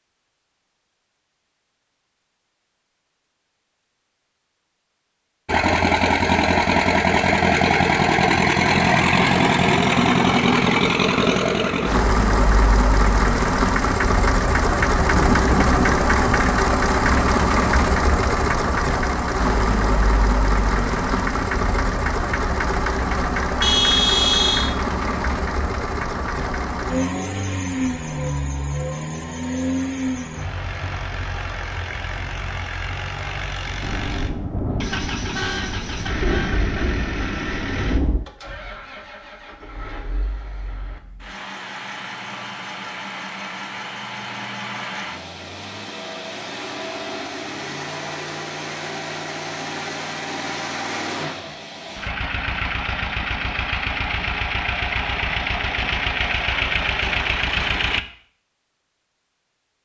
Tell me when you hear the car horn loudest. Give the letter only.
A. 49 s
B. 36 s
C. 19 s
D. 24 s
D.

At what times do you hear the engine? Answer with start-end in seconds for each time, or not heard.
5.5-58.0.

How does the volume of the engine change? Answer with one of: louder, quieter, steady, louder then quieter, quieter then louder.
quieter then louder.